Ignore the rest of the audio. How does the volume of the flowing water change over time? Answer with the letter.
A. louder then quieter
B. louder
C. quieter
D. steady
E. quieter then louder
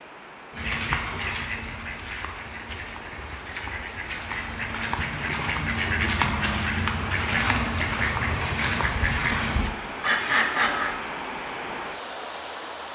B.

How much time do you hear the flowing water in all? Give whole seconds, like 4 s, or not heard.
13 s.